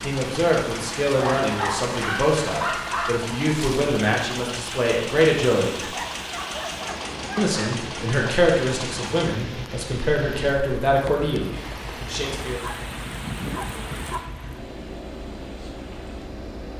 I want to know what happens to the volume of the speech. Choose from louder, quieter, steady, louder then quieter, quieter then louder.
steady.